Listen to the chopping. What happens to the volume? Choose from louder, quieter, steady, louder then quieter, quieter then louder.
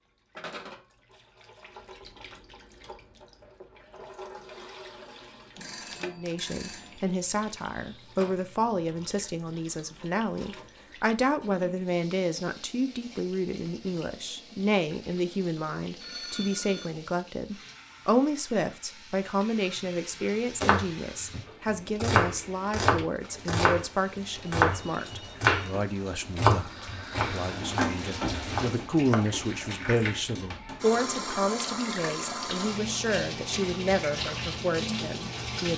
quieter.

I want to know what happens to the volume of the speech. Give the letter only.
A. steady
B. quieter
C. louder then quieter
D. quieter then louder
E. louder
A.